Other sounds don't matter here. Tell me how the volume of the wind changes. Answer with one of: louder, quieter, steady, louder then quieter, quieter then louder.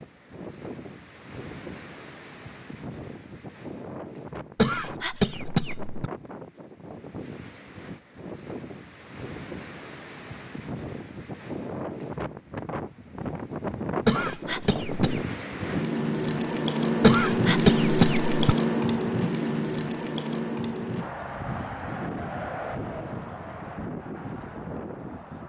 louder then quieter.